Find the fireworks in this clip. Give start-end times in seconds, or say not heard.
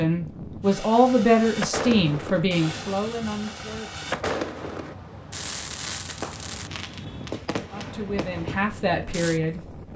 0.7-9.4.